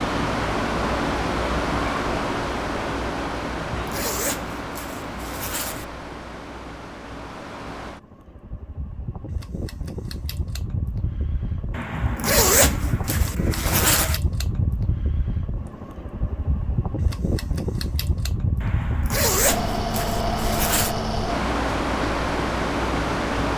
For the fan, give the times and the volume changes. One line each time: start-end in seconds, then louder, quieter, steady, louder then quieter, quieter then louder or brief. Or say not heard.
0.0-23.5 quieter then louder.